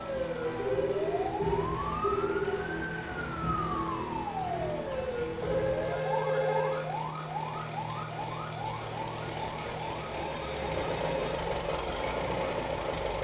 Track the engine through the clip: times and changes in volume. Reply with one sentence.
You can hear the engine from 0.0 to 13.1 s, getting louder.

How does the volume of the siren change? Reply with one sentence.
The loudness of the siren goes down.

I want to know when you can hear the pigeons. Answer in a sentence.
You can't hear the pigeons here.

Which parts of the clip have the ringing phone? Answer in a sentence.
The ringing phone can be heard from 0.6 to 2.6 s, from 5.4 to 6.8 s and from 9.3 to 11.3 s.